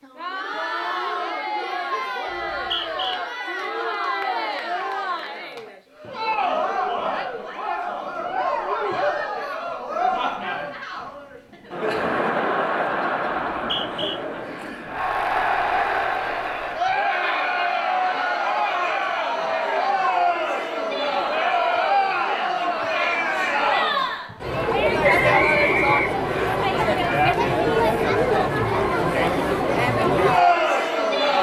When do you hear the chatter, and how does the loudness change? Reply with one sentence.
The chatter can be heard from 0.0 to 31.3 s, getting louder.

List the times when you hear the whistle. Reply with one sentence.
You can hear the whistle from 2.3 to 3.1 s, from 13.6 to 14.2 s and from 25.0 to 26.6 s.